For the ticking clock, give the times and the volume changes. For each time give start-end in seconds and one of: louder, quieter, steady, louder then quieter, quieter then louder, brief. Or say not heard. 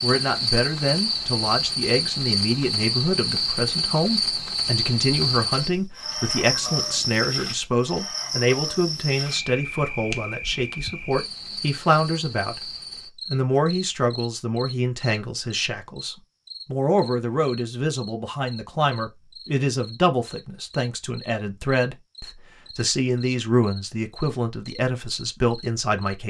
not heard.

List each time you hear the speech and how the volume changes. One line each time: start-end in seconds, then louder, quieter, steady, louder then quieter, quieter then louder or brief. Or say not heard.
0.0-12.7 steady
13.3-26.2 steady.